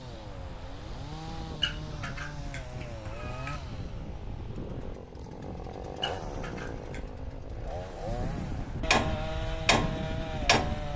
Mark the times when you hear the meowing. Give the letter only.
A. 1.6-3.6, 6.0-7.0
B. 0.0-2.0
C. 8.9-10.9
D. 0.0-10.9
A.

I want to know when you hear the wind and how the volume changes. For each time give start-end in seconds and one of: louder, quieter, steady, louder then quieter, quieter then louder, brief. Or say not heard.
0.0-10.9 louder.